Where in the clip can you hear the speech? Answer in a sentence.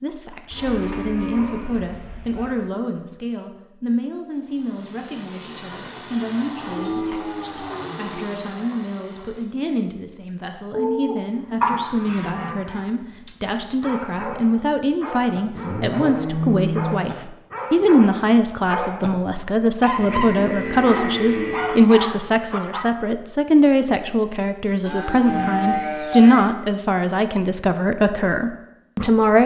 The speech can be heard from 0.0 to 29.4 s.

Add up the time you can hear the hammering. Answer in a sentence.
The hammering can't be heard in this clip.